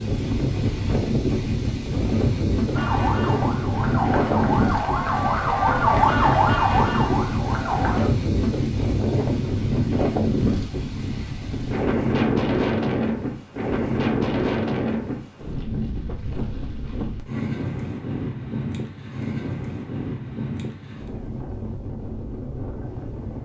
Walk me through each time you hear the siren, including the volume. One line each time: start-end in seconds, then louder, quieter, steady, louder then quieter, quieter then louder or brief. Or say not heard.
2.7-8.1 louder then quieter.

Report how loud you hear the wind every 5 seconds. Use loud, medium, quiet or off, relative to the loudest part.
loud, loud, loud, medium, medium.